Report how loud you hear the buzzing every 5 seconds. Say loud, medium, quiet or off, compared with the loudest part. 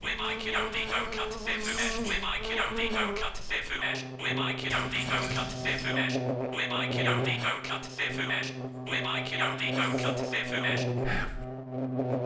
medium, loud, loud.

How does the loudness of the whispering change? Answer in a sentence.
The volume of the whispering stays about the same.